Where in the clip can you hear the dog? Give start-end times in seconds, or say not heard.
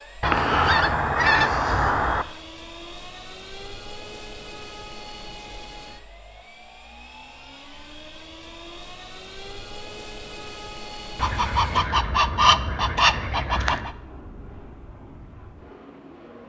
not heard.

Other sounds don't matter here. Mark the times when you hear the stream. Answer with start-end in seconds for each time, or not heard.
not heard.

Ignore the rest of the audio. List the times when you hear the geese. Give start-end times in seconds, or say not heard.
0.2-2.2, 11.2-13.9.